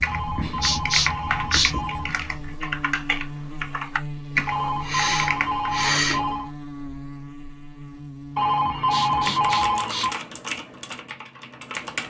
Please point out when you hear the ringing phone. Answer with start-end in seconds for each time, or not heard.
0.1-2.1, 4.5-6.5, 8.3-10.2.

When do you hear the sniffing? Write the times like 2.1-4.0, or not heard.
0.6-1.8, 4.3-6.3, 8.7-10.1.